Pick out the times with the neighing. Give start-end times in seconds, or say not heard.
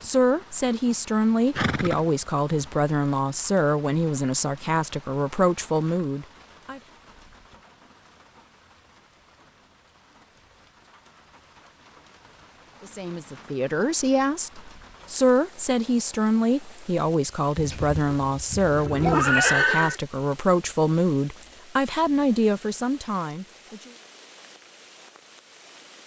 1.6-2.0, 17.6-20.0.